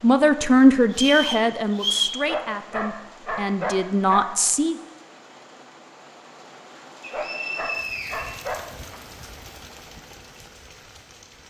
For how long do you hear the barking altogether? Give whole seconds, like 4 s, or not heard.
4 s.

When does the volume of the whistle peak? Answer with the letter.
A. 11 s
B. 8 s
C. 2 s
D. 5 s
C.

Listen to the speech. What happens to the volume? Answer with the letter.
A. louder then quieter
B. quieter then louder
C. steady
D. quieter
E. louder
B.